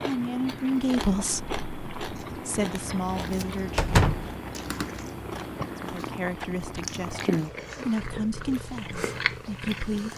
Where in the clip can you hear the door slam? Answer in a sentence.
You can hear the door slam from 3.8 to 4.3 s.